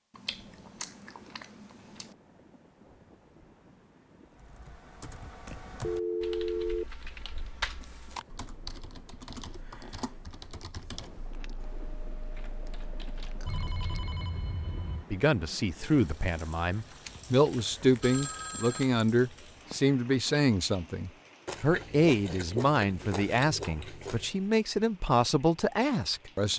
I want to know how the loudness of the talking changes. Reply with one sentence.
The loudness of the talking stays about the same.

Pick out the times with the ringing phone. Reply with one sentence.
The ringing phone can be heard from 5.8 to 6.8 s, from 13.4 to 15.1 s and from 18.0 to 18.9 s.